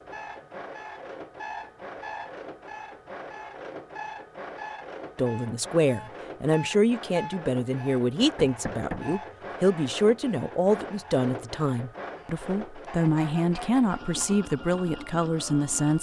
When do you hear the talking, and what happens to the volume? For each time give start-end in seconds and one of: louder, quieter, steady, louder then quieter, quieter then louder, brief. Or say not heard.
5.2-15.9 steady.